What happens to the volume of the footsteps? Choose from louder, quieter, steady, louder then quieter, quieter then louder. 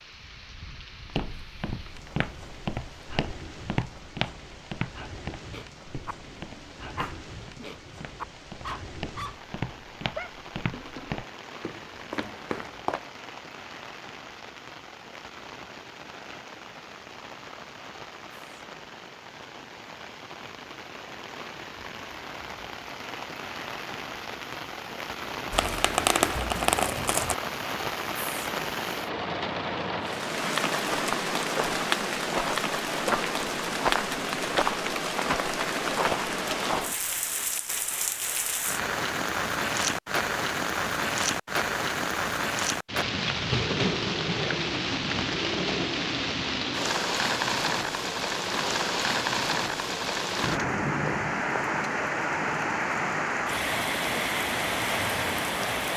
quieter then louder.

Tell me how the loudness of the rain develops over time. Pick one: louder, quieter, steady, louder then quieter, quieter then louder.
louder.